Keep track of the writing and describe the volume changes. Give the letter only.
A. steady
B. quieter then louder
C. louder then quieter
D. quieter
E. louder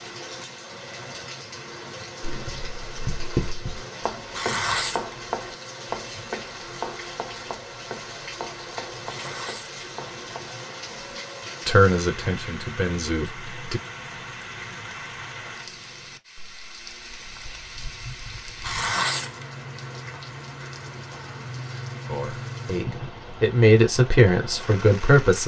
D.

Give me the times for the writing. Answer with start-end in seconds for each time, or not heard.
2.2-11.2.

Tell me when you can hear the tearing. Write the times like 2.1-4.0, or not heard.
4.3-6.4, 9.1-9.8, 18.6-19.4.